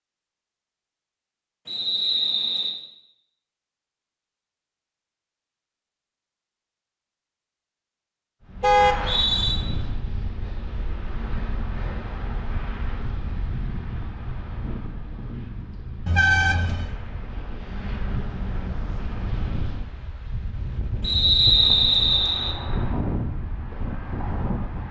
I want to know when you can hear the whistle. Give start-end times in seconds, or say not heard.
1.6-2.8, 8.8-9.6, 21.0-22.6.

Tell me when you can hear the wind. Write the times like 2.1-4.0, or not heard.
8.4-24.8.